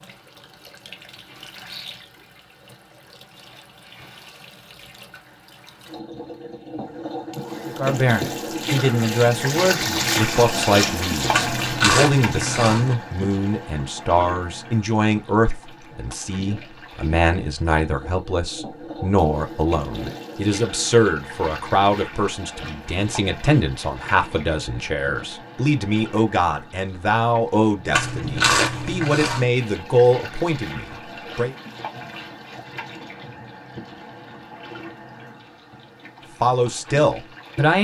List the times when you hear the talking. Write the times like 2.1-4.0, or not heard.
7.7-31.6, 36.4-37.7.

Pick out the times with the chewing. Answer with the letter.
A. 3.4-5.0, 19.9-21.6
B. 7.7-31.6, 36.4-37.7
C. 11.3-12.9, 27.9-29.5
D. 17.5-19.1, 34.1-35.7
C.